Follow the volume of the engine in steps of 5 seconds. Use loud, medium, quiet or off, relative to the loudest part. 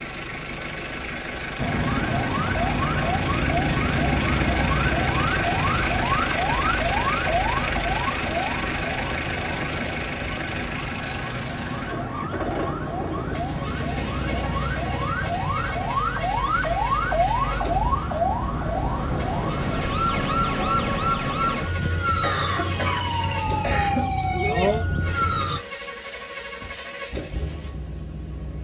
loud, loud, medium, medium, medium, medium.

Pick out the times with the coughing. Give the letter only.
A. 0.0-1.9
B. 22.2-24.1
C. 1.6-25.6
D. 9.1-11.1
B.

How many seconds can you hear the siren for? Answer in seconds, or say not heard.
24 s.